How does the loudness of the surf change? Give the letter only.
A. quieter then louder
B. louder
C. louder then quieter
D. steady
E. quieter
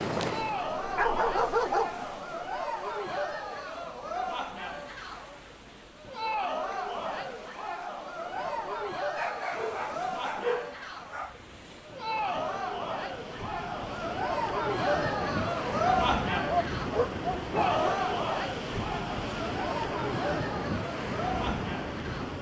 B.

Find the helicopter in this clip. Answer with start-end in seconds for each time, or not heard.
0.0-1.9.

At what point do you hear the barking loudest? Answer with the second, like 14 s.
2 s.